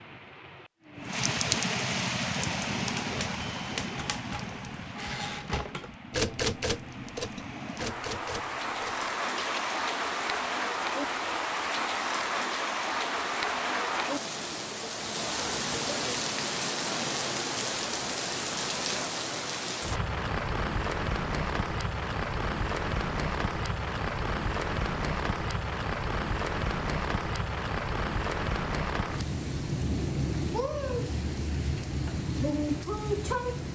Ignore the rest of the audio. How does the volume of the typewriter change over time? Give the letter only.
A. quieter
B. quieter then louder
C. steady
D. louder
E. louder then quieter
E.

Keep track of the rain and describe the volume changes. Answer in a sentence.
The volume of the rain stays about the same.